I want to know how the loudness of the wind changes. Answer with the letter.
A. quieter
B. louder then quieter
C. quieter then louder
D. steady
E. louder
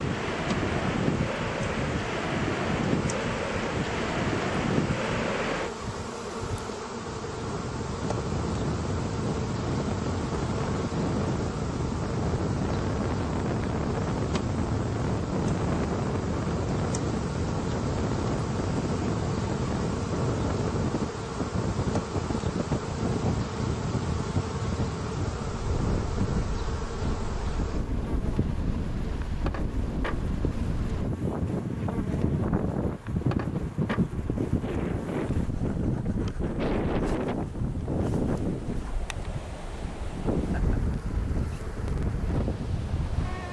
D.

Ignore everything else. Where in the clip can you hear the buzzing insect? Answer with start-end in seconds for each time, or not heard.
0.0-43.4.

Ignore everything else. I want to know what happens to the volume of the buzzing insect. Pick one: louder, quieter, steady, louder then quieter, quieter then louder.
quieter.